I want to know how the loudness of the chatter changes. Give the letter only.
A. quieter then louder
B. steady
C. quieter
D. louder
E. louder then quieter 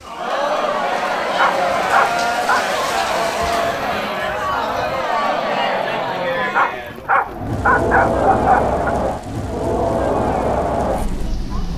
B.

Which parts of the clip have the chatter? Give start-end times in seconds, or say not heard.
0.0-11.7.